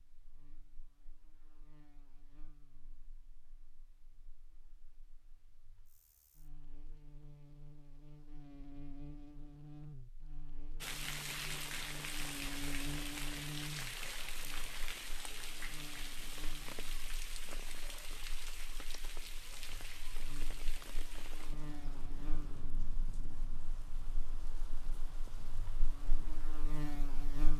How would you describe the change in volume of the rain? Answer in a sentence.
The volume of the rain goes down.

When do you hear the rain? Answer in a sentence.
The rain can be heard from 10.8 to 27.5 s.